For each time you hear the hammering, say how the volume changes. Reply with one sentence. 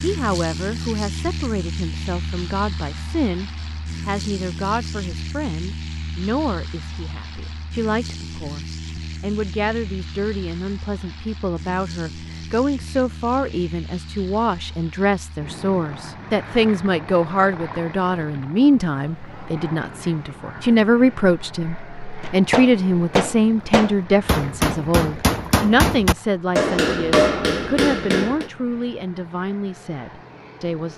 The hammering can be heard from 22.2 to 28.5 s, at a steady volume.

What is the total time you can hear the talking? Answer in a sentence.
You can hear the talking for 31 seconds altogether.